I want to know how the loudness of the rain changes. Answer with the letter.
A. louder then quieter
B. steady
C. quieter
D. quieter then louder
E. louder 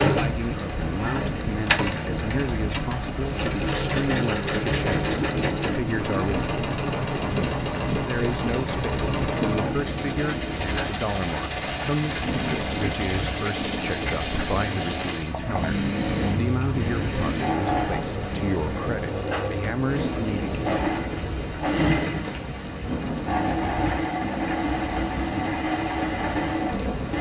B.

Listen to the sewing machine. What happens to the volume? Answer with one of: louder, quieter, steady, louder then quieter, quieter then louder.
steady.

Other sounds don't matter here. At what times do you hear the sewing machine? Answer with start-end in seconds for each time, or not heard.
0.0-27.1.